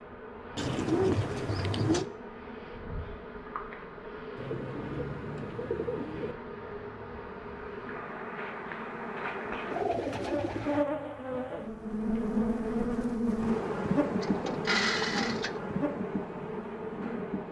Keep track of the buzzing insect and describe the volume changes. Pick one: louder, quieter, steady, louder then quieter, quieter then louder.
louder.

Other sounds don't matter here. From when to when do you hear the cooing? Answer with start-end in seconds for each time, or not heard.
0.6-2.0, 4.3-6.3, 9.7-10.8, 14.2-15.6.